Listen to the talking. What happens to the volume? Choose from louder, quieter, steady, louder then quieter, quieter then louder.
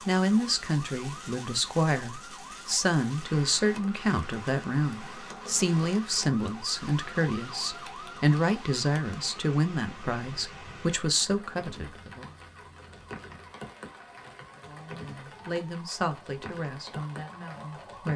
quieter.